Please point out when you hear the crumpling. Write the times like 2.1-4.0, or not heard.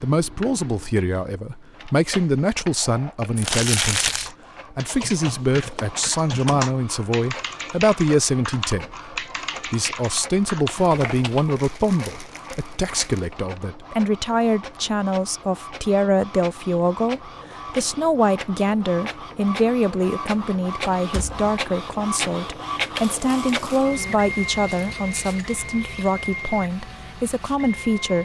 3.4-4.3, 10.8-13.2, 22.9-23.9.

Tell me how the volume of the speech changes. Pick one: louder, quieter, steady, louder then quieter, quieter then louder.
steady.